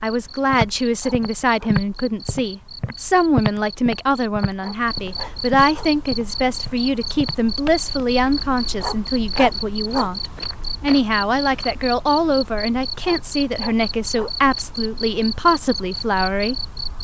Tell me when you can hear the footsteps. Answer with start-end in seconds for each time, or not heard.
0.5-11.8.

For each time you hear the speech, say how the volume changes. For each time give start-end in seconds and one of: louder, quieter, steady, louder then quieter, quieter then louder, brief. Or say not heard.
0.0-16.6 steady.